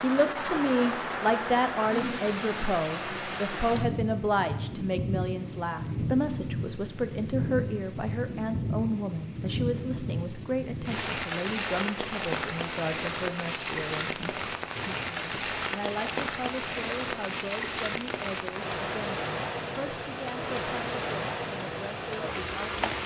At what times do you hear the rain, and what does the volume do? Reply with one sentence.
The rain can be heard from 0.0 to 23.0 s, at a steady volume.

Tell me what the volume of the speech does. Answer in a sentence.
The volume of the speech goes down.